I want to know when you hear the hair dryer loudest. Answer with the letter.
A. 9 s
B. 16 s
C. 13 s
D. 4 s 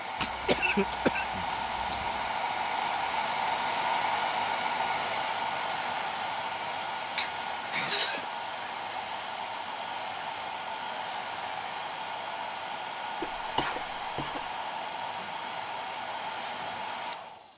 D.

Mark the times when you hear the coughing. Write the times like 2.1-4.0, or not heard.
0.2-2.2, 7.2-8.2, 13.2-14.4.